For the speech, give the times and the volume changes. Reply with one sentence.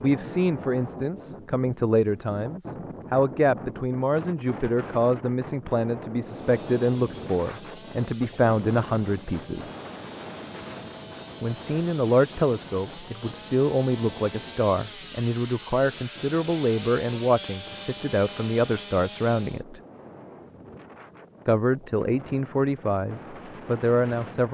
The speech can be heard from 0.0 to 9.7 s, at a steady volume; from 11.4 to 19.8 s, at a steady volume; and briefly from 21.4 to 24.4 s.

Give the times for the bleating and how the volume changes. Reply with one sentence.
The bleating can't be heard in this clip.